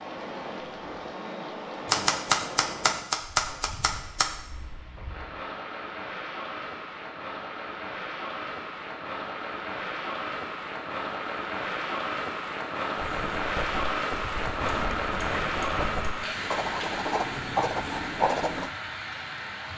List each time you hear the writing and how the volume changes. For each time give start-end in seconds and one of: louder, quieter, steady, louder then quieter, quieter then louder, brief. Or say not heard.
12.9-18.7 louder.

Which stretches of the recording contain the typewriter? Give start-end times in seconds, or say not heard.
1.9-4.3, 14.7-16.2.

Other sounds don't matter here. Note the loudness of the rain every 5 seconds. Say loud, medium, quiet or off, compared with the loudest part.
medium, medium, loud, loud.